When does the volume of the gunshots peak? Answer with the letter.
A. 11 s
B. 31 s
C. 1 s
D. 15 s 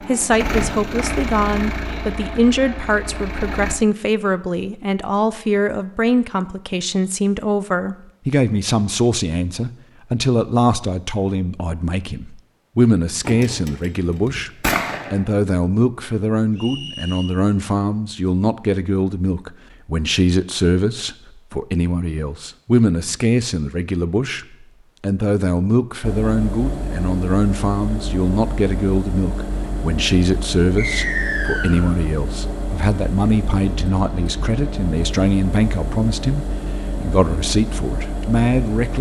D.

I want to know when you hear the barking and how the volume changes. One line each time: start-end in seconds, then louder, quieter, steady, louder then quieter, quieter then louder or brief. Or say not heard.
not heard.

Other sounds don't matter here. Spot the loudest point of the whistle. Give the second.
31 s.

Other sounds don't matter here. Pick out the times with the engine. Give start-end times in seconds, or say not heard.
0.0-3.8, 26.0-38.9.